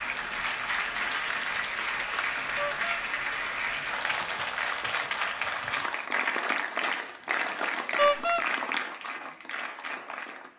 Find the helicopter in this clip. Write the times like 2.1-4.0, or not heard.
not heard.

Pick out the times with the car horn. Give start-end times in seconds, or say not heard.
2.5-3.0, 8.0-8.4.